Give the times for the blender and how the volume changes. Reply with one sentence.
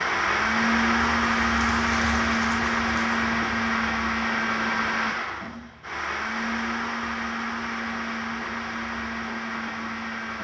The blender can be heard from 0.0 to 10.3 s, getting quieter.